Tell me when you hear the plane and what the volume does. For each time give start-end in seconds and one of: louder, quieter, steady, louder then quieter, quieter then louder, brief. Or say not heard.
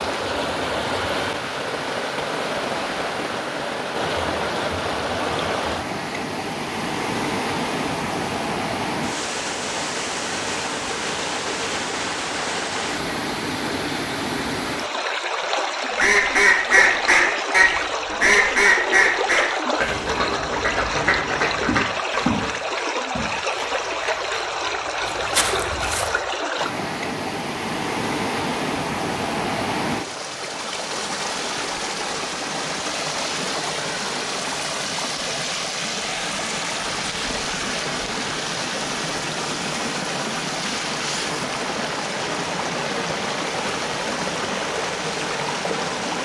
not heard.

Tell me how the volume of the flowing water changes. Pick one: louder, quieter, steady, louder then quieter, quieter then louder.
steady.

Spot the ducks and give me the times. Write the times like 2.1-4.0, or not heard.
15.9-22.6.